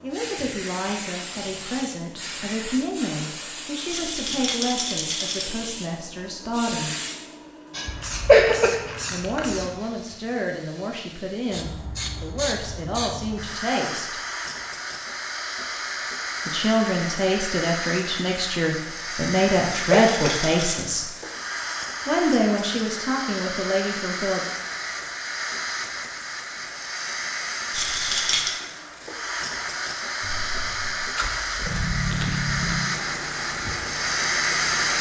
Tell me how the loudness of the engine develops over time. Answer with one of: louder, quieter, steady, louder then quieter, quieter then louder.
louder then quieter.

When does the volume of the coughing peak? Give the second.
8 s.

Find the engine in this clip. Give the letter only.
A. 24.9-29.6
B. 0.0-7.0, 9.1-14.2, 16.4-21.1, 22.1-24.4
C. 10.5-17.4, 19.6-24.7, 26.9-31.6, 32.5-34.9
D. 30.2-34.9
D.